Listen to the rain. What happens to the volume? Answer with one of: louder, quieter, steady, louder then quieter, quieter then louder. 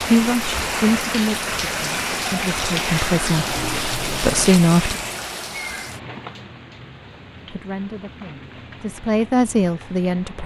quieter.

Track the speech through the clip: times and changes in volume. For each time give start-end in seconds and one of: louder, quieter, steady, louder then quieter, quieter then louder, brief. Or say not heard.
0.1-5.0 quieter then louder
7.5-10.4 brief.